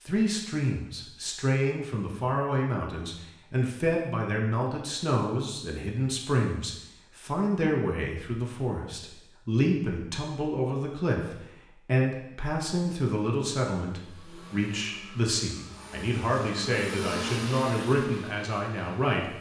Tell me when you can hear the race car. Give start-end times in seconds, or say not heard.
13.9-19.3.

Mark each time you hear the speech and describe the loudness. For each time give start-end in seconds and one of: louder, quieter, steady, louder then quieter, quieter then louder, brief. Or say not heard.
0.0-19.3 steady.